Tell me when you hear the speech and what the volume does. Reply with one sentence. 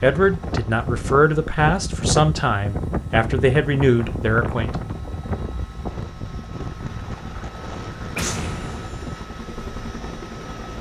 The speech can be heard from 0.0 to 4.8 s, at a steady volume.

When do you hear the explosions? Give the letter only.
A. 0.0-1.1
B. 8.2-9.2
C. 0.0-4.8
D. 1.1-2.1
B.